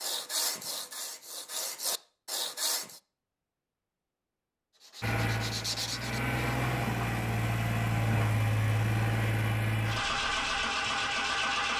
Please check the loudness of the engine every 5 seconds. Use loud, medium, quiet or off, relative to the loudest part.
off, loud, loud.